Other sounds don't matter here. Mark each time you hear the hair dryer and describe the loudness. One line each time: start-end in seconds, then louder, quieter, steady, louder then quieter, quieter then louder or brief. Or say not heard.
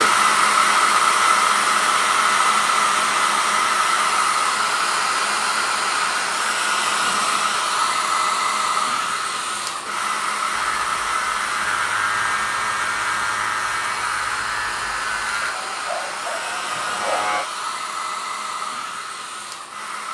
0.0-20.0 quieter.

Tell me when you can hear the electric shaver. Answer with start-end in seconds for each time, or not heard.
10.4-17.4.